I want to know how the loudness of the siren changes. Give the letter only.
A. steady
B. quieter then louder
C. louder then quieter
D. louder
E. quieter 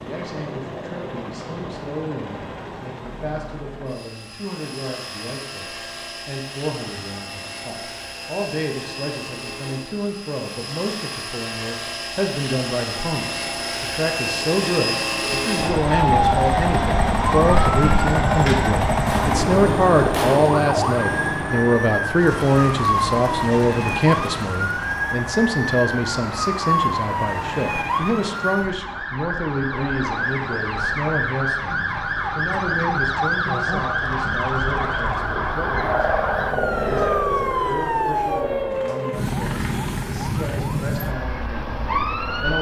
A.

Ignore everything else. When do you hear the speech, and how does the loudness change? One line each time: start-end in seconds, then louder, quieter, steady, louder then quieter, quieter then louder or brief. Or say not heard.
0.0-42.5 louder then quieter.